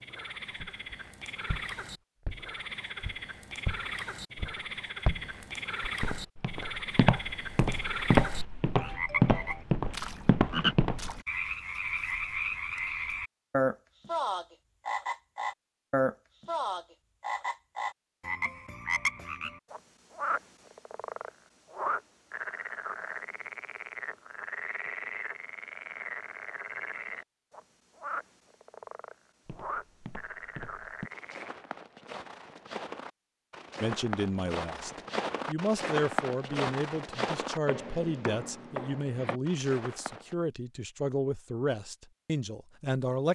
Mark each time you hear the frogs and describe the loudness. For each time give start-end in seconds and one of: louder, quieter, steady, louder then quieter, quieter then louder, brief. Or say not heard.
0.0-31.6 louder then quieter.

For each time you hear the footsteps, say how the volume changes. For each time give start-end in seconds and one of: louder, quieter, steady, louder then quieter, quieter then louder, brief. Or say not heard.
0.6-11.2 louder
29.4-40.4 louder then quieter.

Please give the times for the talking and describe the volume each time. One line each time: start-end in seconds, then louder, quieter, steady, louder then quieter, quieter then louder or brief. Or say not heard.
33.8-43.3 steady.